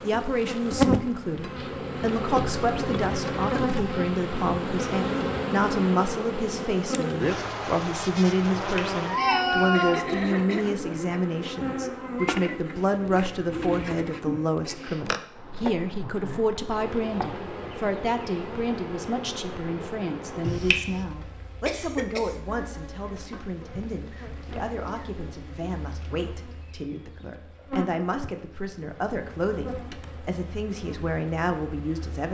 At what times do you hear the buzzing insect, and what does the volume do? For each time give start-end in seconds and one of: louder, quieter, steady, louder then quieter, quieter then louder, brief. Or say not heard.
0.0-32.2 quieter.